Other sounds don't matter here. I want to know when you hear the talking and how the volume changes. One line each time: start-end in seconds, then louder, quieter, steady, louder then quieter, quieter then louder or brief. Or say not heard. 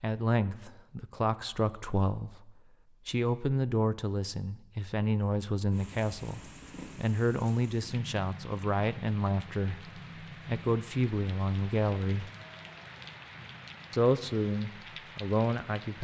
0.0-12.3 steady
13.9-16.0 brief.